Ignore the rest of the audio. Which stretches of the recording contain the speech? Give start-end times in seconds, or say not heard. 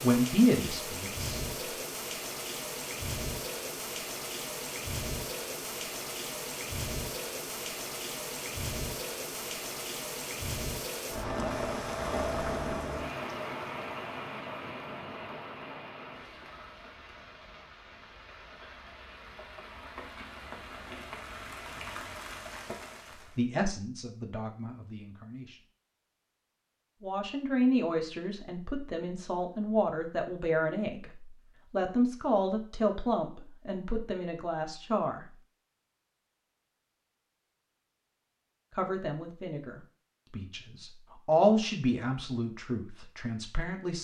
0.0-1.3, 23.4-25.6, 27.0-35.2, 38.8-44.0.